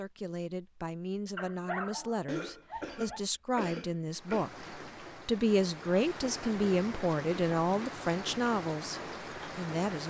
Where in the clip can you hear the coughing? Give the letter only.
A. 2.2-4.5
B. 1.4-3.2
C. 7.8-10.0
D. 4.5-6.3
A.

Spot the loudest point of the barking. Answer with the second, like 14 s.
2 s.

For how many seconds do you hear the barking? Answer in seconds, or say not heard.
2 s.